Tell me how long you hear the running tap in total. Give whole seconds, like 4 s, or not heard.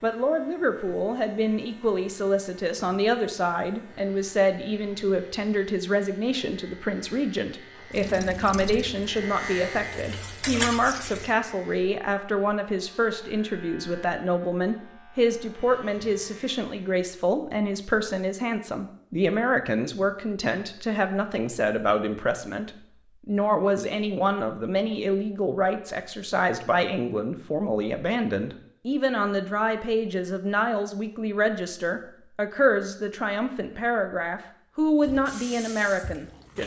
5 s.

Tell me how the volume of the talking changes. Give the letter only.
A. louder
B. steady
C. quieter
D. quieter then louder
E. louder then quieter
B.